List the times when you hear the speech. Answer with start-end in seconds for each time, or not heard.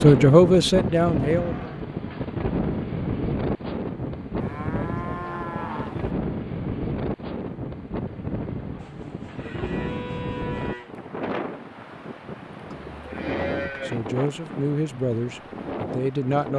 0.0-1.8, 13.2-16.5.